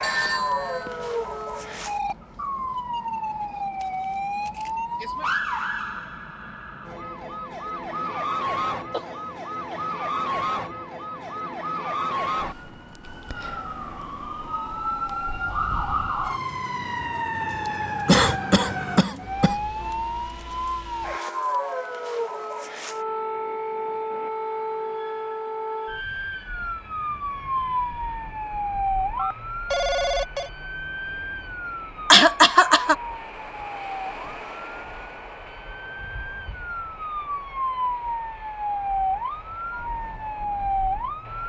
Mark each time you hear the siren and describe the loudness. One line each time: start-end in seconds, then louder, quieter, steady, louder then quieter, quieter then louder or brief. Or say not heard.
0.0-41.4 steady.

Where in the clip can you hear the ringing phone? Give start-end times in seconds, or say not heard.
0.0-0.9, 29.1-30.5.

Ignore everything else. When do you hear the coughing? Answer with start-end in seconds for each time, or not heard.
8.9-9.8, 18.1-19.6, 32.1-33.0.